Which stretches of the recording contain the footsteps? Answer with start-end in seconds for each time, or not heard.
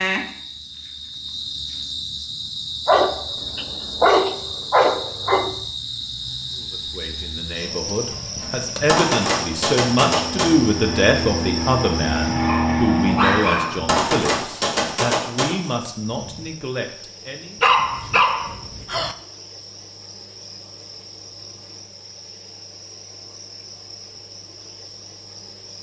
not heard.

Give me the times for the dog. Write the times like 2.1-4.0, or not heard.
2.9-5.5, 12.4-13.8, 17.6-19.1.